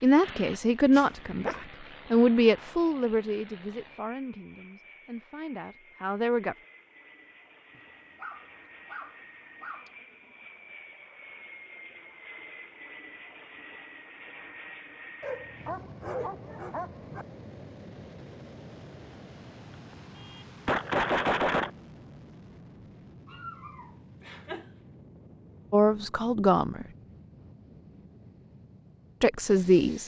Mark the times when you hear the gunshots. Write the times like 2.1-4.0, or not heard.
20.1-21.7.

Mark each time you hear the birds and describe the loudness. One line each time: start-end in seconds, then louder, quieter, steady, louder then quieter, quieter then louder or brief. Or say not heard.
not heard.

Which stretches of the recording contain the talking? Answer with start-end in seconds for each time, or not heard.
0.0-6.5, 25.7-26.9, 29.2-30.0.